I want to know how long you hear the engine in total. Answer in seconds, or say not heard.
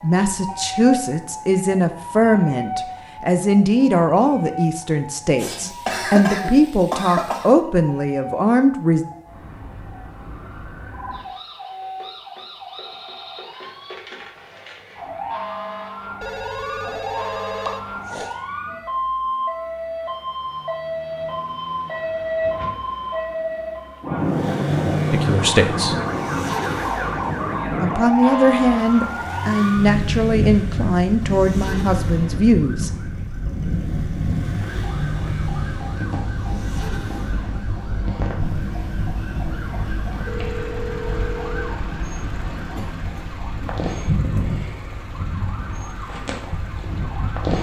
23 s.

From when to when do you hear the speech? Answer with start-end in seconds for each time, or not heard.
0.0-9.1, 25.1-25.9, 27.8-33.0.